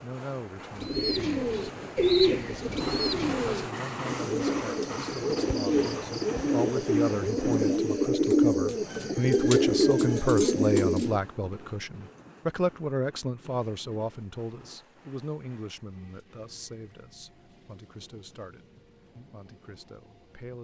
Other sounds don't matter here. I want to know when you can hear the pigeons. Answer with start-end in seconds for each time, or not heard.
0.8-11.2.